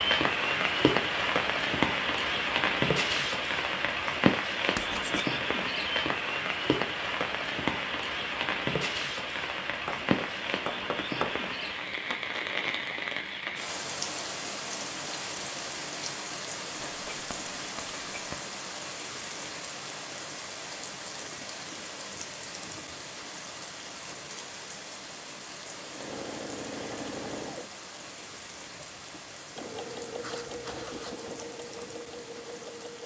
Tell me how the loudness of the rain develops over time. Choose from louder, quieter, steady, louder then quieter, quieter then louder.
quieter.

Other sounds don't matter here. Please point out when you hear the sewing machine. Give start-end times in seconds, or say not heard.
25.7-33.0.